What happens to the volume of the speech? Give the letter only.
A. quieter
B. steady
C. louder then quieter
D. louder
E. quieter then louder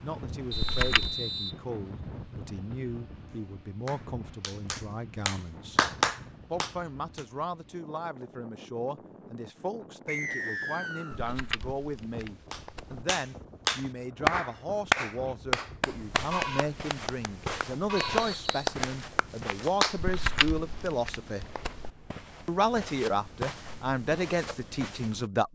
D.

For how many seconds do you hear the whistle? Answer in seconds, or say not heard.
3 s.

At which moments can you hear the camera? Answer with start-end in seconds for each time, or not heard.
0.5-1.1, 11.1-13.1, 19.9-21.9.